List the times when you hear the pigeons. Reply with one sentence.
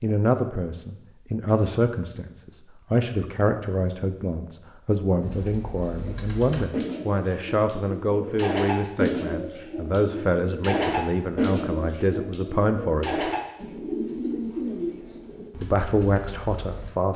You can hear the pigeons from 5.2 to 16.9 s.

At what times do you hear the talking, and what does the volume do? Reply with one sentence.
The talking can be heard from 0.0 to 13.3 s, at a steady volume; and briefly from 15.6 to 17.1 s.